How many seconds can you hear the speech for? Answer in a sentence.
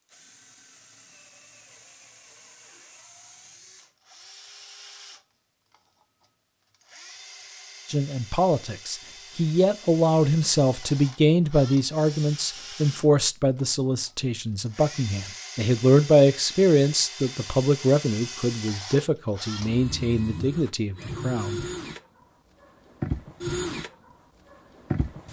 The speech can be heard for 14 seconds in total.